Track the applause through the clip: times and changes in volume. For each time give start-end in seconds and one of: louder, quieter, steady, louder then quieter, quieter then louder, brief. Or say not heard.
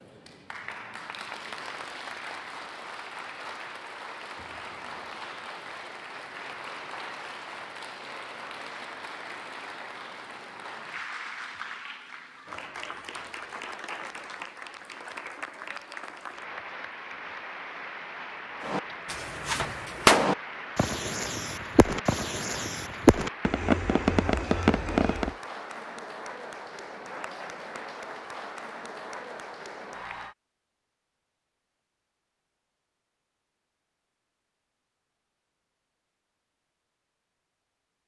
0.0-30.4 steady.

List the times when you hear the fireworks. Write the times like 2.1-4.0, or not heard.
18.6-25.3.